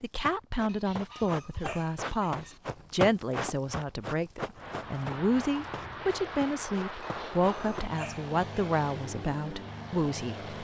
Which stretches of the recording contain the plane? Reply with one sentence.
You can hear the plane from 4.5 to 10.5 s.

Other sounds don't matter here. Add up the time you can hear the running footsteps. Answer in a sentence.
The running footsteps can be heard for 8 seconds in total.